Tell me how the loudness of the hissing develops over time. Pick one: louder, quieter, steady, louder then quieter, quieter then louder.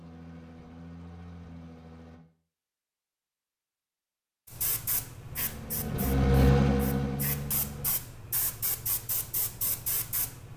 quieter then louder.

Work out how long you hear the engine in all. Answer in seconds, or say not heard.
5 s.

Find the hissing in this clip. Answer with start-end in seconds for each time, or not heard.
4.5-10.5.